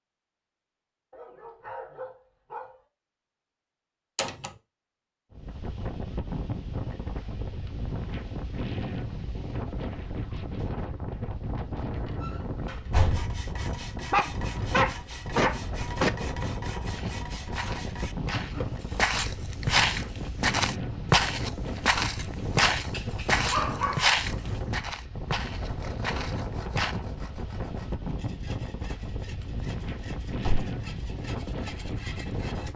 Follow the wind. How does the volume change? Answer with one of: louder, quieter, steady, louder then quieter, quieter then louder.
steady.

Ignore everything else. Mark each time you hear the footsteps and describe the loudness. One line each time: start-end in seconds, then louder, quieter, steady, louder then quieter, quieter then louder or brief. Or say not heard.
16.9-26.9 louder then quieter.